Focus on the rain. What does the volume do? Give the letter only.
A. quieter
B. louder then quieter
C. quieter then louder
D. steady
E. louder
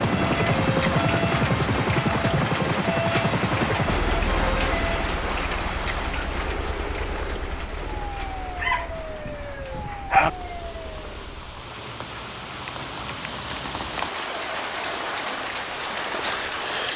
C.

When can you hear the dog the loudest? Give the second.
10 s.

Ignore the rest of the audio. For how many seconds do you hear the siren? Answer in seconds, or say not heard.
11 s.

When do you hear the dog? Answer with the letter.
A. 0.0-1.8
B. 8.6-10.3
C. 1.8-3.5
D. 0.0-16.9
B.